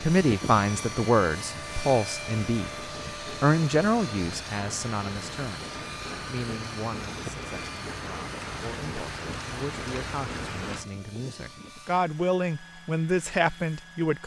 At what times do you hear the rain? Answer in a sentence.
The rain can be heard from 0.0 to 10.8 s.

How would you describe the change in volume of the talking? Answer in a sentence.
The volume of the talking goes down, then up.